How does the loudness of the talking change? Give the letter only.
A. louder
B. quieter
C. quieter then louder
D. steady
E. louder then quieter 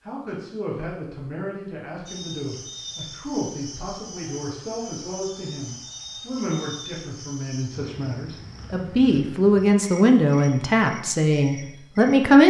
A.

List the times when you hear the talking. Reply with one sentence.
The talking can be heard from 0.1 to 12.4 s.